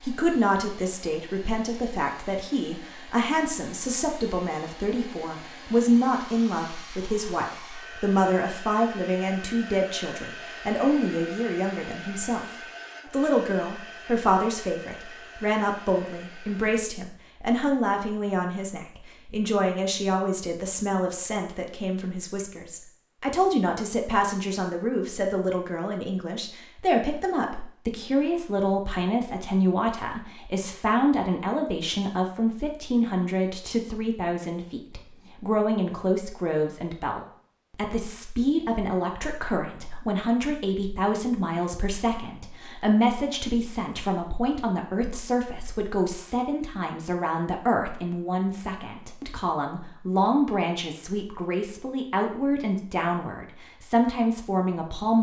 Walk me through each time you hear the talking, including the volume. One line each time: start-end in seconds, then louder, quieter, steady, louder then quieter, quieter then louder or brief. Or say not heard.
0.0-55.1 steady.